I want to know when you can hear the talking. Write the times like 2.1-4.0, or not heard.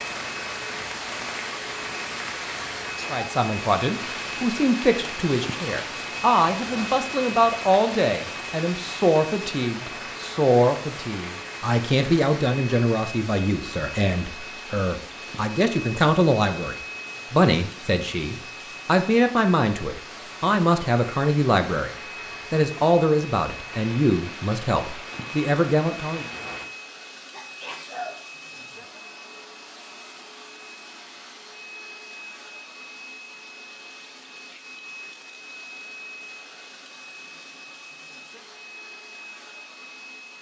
3.1-21.9, 22.5-26.2.